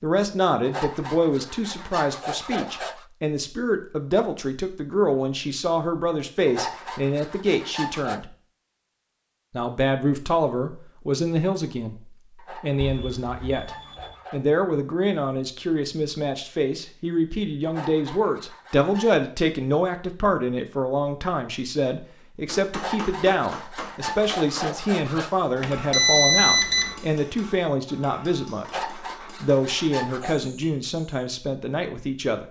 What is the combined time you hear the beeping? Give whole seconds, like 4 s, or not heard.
3 s.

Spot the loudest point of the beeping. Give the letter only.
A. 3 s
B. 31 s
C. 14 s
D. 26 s
D.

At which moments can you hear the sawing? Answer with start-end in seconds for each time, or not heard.
0.7-3.0, 6.5-8.2, 12.3-14.4, 17.6-19.1, 22.7-25.4, 28.6-30.4.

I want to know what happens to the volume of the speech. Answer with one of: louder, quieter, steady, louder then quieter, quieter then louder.
steady.